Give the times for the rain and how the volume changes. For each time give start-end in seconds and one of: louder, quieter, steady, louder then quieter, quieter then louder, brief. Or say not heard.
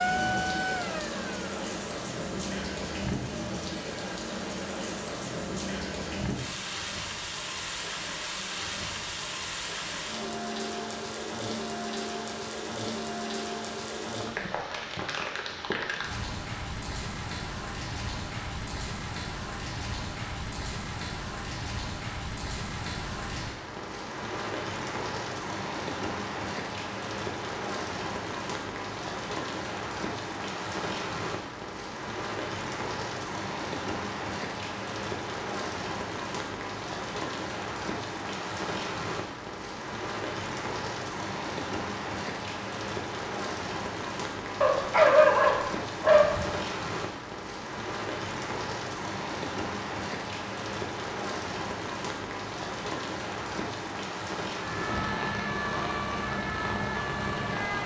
0.0-57.8 steady.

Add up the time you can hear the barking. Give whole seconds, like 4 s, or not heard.
2 s.